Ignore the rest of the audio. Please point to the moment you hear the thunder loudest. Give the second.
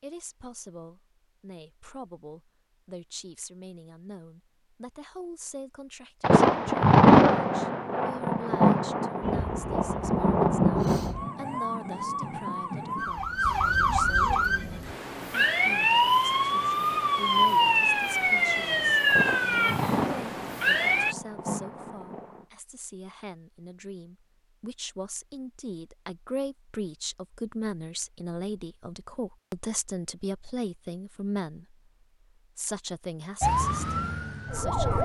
7 s.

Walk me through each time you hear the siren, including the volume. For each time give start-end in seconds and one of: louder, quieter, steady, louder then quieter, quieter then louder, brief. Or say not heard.
9.2-21.1 louder
33.4-35.0 brief.